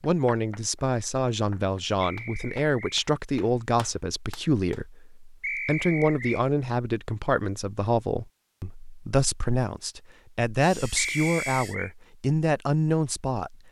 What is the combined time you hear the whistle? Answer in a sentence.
The whistle can be heard for 3 seconds in total.